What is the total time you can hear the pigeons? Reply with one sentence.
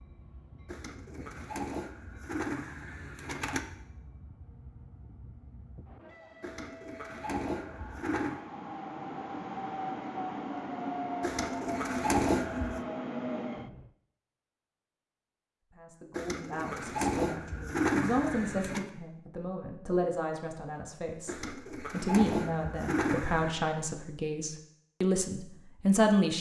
The pigeons can be heard for 12 seconds in total.